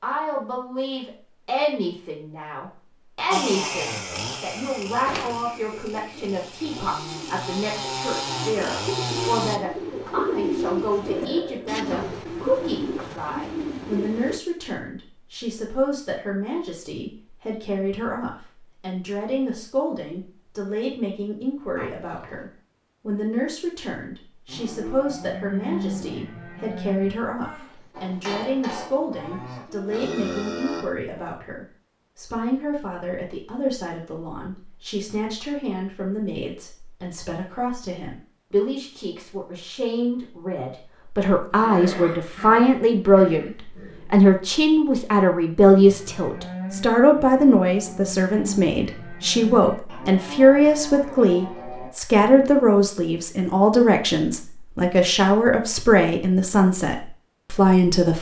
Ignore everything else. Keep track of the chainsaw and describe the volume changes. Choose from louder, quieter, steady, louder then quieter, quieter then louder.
quieter then louder.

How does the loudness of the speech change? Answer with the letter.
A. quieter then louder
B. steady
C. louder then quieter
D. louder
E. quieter
D.